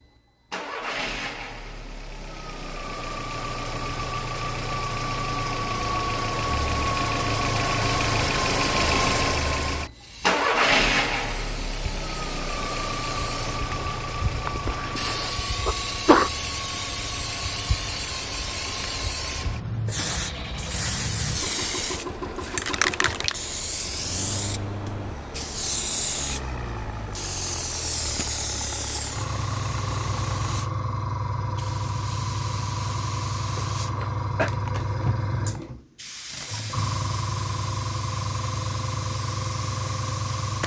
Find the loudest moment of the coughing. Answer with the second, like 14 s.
16 s.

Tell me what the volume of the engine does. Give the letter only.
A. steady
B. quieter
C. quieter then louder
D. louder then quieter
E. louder
D.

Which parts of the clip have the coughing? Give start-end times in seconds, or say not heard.
14.4-16.3, 33.5-34.5.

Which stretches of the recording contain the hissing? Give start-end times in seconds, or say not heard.
9.9-40.6.